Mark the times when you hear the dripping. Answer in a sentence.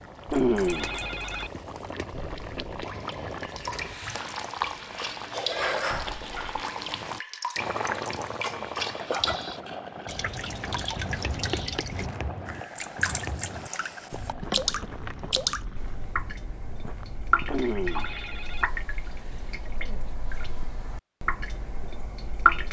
You can hear the dripping from 0.0 to 22.6 s.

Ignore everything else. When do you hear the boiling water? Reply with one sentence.
The boiling water can be heard from 0.0 to 16.2 s.